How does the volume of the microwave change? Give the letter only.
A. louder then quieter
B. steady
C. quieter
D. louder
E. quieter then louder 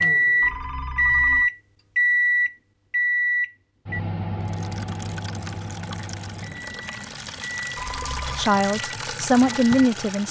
C.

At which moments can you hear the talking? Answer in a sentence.
The talking can be heard from 8.3 to 10.2 s.